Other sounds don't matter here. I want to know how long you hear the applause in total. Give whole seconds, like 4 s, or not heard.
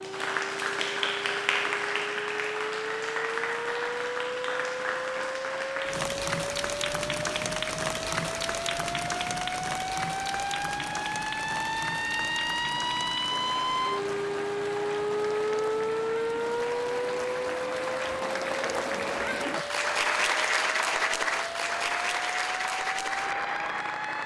24 s.